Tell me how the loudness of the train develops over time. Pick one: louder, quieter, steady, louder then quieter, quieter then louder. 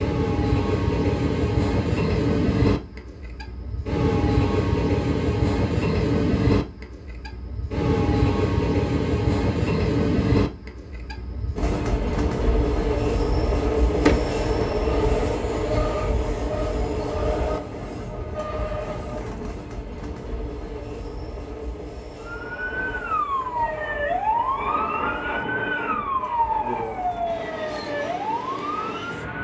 quieter.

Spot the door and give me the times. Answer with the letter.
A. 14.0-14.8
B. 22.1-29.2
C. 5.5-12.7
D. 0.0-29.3
A.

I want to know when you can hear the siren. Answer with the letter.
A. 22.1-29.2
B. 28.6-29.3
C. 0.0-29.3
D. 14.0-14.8
A.